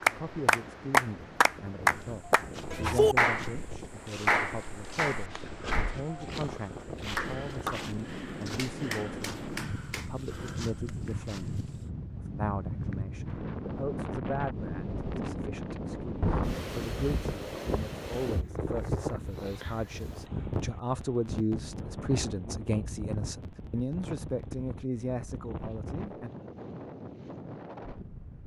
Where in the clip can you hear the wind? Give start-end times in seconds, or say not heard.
0.0-28.4.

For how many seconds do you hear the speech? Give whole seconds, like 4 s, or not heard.
26 s.